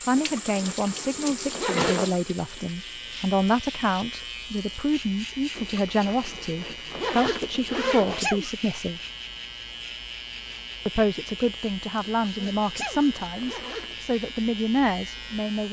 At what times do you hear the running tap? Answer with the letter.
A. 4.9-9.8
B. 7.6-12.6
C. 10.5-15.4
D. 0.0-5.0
D.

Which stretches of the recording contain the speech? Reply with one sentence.
The speech can be heard from 0.1 to 9.0 s and from 10.8 to 15.6 s.